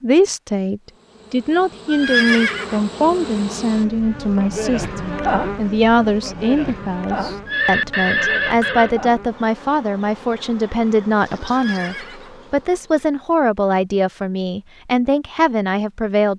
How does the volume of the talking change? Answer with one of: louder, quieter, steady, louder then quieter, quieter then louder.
steady.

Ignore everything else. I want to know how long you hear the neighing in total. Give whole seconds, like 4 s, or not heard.
4 s.